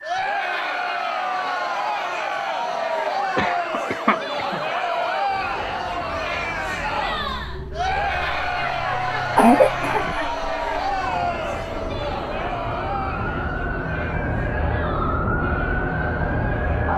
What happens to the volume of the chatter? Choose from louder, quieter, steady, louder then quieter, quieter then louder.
quieter.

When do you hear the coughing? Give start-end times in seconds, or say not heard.
3.4-4.6, 8.6-10.2.